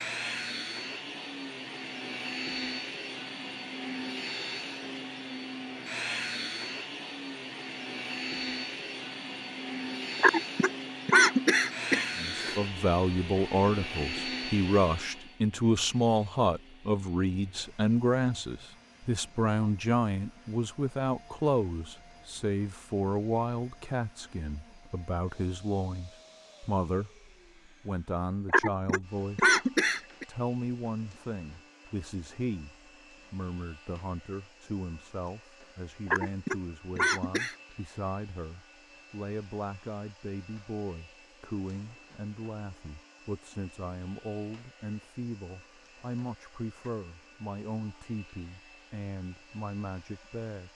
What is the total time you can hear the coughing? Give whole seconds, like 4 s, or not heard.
6 s.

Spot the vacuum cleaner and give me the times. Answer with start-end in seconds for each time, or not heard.
0.0-50.7.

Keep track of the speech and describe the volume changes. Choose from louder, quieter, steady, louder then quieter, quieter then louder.
quieter.